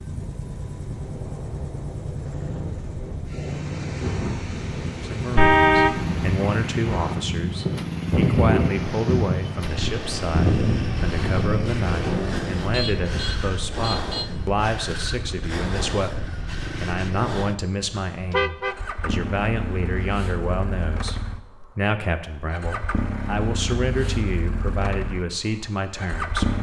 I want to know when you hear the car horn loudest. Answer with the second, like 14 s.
6 s.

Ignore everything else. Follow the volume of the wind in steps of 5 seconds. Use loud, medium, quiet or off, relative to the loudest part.
medium, loud, loud, off, off, off.